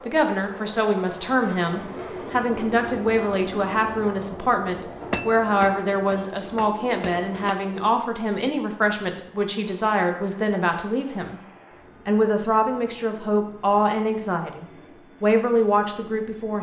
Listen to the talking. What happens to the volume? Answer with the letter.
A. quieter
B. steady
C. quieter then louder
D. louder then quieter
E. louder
B.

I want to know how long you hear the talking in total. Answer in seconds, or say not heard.
16 s.